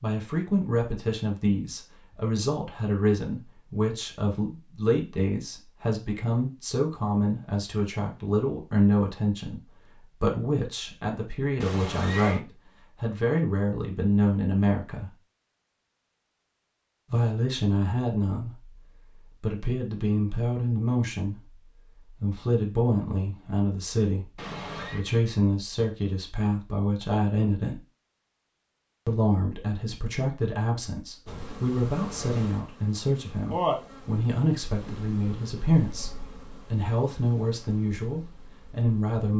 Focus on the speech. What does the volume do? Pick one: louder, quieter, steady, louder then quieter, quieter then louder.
steady.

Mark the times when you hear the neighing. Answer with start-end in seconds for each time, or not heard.
11.6-12.4, 24.4-25.1.